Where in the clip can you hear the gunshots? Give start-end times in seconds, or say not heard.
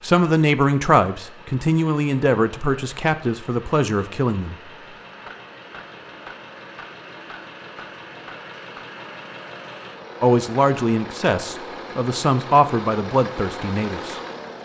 5.0-8.9.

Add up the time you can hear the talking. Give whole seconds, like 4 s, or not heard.
9 s.